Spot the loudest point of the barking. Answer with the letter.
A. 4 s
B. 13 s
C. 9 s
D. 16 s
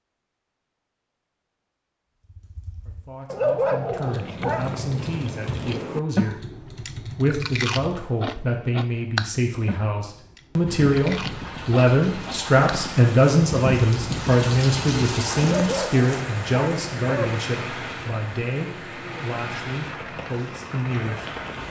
A.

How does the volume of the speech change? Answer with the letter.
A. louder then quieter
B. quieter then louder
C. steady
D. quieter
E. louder
A.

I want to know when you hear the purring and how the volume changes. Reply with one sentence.
The purring can't be heard in this clip.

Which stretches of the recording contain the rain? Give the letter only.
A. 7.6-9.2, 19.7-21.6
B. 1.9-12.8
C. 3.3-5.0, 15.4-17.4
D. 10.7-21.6
D.